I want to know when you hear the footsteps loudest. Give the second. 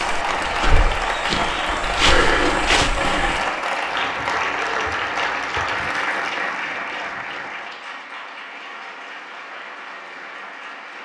2 s.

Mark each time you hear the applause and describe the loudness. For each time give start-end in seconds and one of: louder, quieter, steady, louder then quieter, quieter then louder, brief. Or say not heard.
0.0-11.0 quieter.